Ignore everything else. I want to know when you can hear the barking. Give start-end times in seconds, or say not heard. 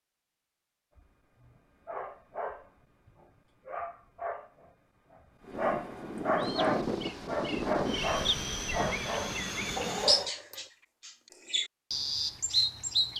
0.9-10.7.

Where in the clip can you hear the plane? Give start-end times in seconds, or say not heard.
5.4-10.3.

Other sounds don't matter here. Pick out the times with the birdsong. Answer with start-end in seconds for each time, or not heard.
6.3-13.1.